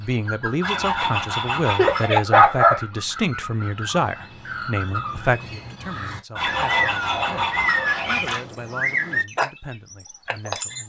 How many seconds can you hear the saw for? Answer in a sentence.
The saw can be heard for 4 seconds in total.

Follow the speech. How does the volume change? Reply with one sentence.
The loudness of the speech goes down.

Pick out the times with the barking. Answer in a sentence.
You can hear the barking from 1.8 to 2.8 s and from 6.5 to 8.2 s.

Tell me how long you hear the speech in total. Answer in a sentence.
The speech can be heard for 11 seconds in total.